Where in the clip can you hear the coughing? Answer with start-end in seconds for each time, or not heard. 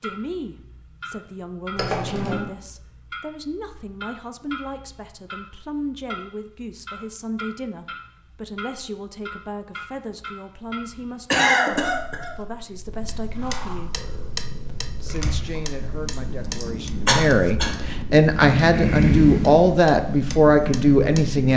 1.8-2.5, 11.2-12.3, 16.6-17.7.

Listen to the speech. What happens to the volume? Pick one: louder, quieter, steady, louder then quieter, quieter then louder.
louder.